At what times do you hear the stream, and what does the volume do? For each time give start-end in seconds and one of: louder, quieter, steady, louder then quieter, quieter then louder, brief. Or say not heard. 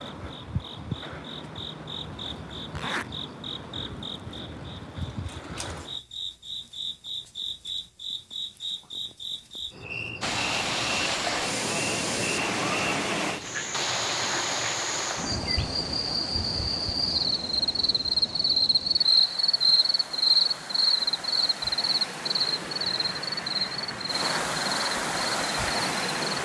10.2-26.4 quieter then louder.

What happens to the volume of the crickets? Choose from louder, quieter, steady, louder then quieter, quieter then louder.
louder.